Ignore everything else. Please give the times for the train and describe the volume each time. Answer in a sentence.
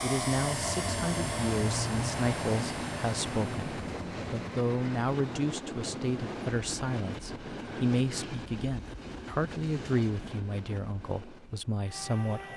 You can hear the train from 0.0 to 12.5 s, getting quieter.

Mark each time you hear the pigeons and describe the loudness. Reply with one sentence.
The pigeons can't be heard in this clip.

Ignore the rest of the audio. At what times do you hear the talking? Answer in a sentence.
You can hear the talking from 0.0 to 12.5 s.